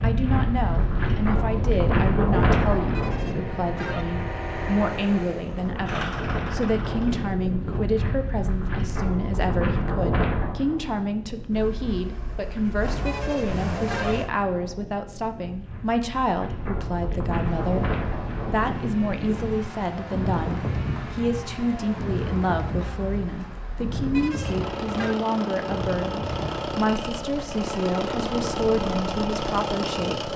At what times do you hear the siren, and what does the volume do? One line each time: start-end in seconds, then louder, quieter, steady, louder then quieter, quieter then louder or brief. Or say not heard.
not heard.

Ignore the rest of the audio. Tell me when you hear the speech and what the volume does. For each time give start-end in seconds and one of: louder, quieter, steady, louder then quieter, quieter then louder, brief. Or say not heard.
0.0-30.3 steady.